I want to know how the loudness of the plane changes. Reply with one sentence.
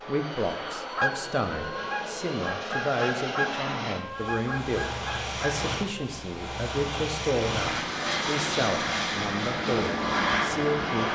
The loudness of the plane goes up.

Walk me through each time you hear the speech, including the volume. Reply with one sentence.
The speech can be heard from 0.1 to 11.1 s, at a steady volume.